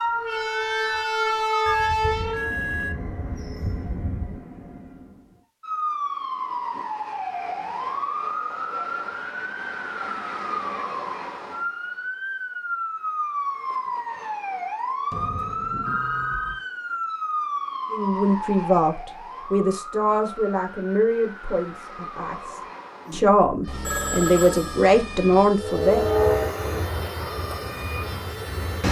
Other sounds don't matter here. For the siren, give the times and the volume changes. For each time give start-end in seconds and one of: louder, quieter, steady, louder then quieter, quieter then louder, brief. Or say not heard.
0.0-1.8 brief
5.6-28.8 quieter.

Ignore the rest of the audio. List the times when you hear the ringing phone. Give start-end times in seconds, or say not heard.
1.6-4.4, 15.1-16.6, 23.6-25.4.